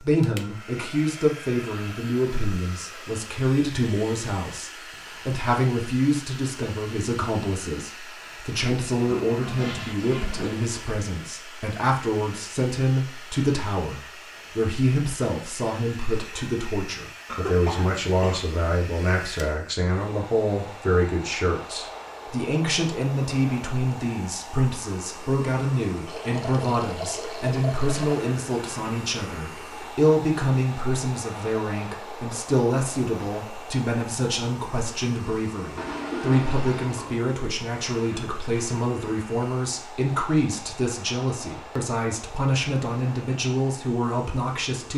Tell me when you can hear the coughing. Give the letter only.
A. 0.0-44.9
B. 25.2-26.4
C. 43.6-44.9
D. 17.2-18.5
D.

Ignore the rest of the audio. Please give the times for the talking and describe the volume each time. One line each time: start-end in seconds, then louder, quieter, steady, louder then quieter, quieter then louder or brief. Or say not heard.
0.0-44.9 steady.